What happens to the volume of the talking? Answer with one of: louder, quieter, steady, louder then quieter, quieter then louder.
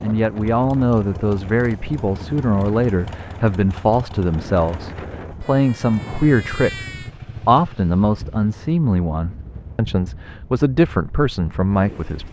steady.